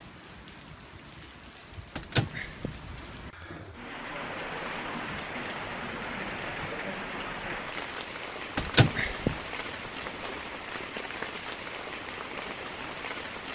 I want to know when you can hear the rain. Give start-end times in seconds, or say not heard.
0.0-13.5.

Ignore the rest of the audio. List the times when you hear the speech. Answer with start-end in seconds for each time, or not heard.
not heard.